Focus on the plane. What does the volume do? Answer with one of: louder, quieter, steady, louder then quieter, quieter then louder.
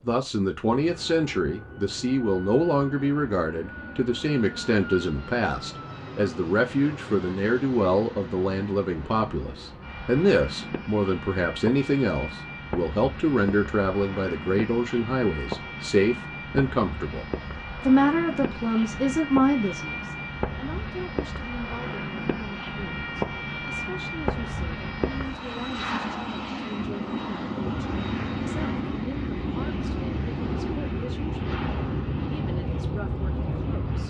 louder.